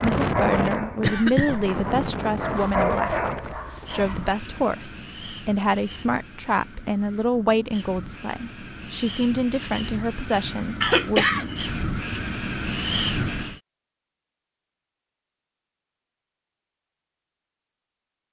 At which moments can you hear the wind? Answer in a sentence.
You can hear the wind from 0.0 to 13.6 s.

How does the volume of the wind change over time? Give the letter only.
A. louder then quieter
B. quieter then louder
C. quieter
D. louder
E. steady
B.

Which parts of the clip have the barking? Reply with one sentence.
The barking can be heard from 0.0 to 4.4 s.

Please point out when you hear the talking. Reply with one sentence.
The talking can be heard from 0.0 to 11.3 s.